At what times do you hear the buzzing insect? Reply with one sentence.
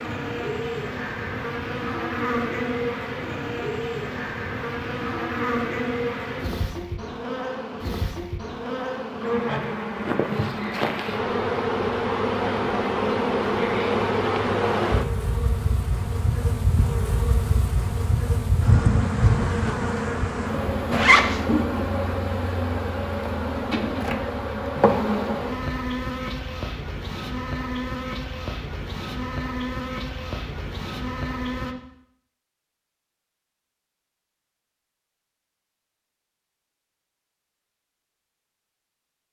The buzzing insect can be heard from 0.0 to 31.8 s.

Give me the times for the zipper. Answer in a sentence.
The zipper can be heard from 20.9 to 21.4 s.